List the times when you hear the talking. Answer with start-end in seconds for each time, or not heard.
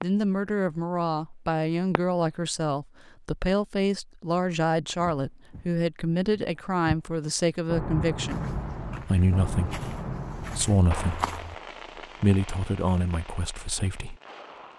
0.0-11.3, 12.2-14.2.